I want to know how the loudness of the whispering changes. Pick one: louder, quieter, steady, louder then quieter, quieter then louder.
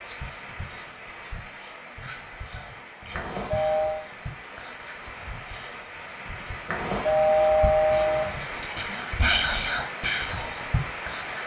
louder.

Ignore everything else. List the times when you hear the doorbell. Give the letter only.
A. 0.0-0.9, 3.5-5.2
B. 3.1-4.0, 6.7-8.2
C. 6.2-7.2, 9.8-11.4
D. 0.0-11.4
B.